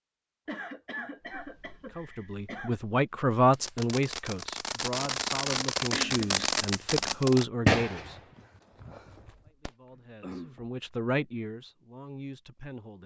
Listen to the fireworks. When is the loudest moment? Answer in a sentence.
The volume of the fireworks peaks at 8 seconds.